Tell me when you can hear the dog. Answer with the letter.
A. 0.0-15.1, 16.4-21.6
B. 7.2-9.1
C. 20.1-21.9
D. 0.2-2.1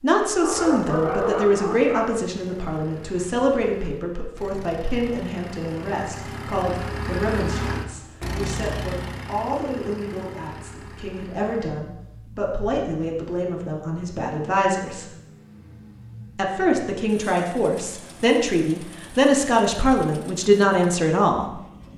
D.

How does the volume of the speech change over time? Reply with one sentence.
The volume of the speech goes down, then up.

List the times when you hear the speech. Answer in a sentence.
You can hear the speech from 0.0 to 15.1 s and from 16.4 to 21.6 s.